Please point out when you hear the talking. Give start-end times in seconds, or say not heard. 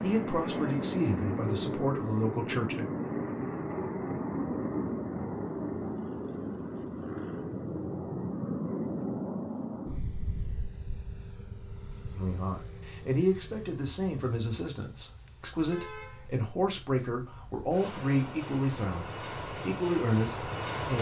0.0-2.9, 12.2-20.9.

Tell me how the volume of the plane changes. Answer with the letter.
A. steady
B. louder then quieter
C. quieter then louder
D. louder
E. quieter
C.